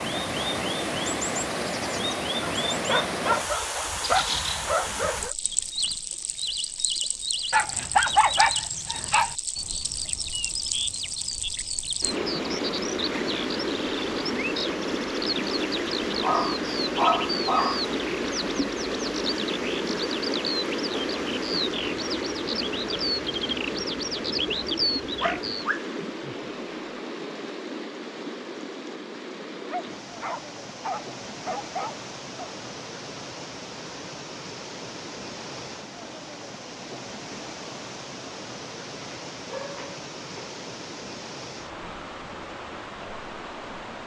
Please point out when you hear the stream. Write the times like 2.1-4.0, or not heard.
0.0-44.0.